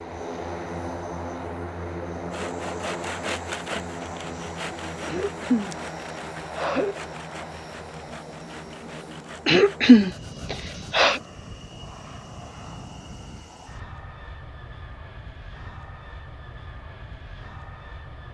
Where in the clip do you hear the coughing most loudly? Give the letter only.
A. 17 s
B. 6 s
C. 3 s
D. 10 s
D.